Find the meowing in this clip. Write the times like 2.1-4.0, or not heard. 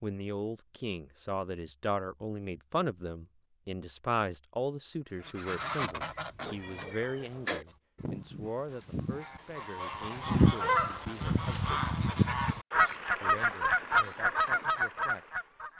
6.4-7.7.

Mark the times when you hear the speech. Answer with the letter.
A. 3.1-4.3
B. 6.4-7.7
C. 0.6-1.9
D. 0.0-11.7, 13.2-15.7
D.